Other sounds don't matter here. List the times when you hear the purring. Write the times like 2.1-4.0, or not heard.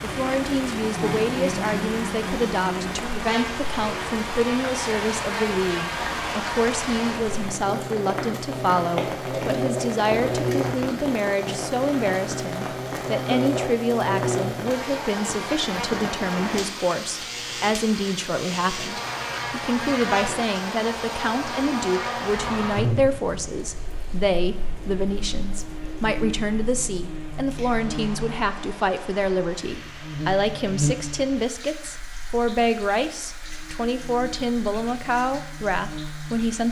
not heard.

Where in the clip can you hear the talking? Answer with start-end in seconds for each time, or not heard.
0.0-36.6.